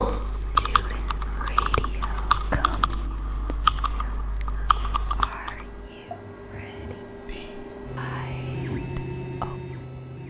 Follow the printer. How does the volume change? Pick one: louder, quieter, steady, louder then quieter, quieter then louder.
louder.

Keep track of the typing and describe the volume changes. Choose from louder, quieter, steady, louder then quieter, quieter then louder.
quieter.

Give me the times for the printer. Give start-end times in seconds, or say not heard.
0.0-10.2.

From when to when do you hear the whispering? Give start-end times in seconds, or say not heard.
0.6-9.6.